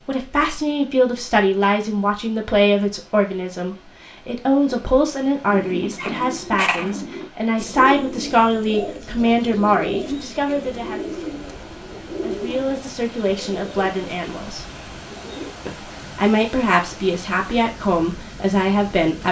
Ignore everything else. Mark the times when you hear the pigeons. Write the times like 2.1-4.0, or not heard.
5.5-15.6.